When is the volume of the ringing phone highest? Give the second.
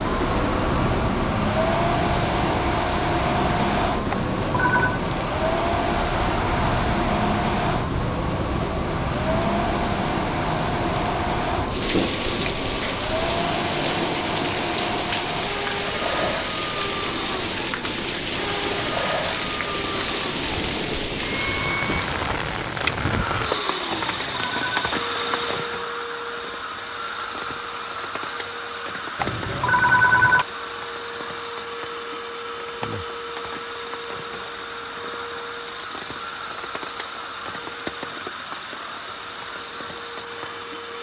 30 s.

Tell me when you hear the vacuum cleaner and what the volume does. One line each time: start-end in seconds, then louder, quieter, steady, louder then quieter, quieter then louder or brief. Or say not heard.
0.0-40.9 quieter.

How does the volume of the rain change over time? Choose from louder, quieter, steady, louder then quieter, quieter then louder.
quieter.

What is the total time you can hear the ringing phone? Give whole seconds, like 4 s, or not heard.
3 s.